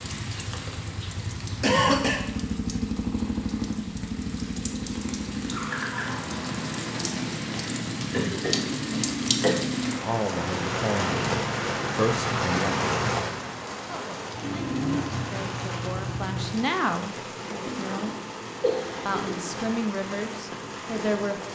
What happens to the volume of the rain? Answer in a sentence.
The volume of the rain goes up, then down.